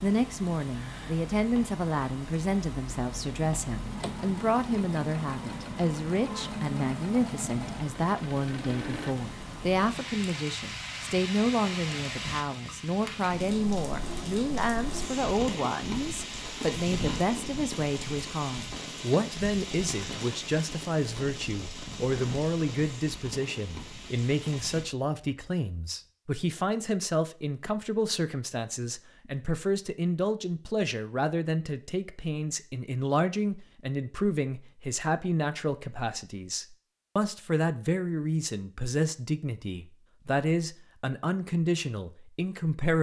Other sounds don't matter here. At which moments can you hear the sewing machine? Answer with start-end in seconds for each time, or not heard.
2.9-9.2.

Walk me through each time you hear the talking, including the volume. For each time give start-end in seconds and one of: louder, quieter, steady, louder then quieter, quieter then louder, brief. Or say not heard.
0.0-42.9 steady.